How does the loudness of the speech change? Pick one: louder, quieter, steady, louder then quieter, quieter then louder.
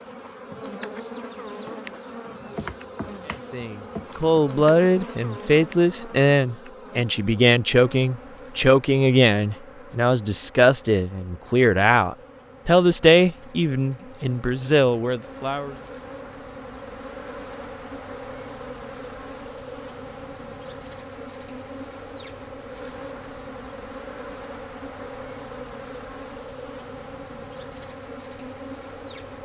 steady.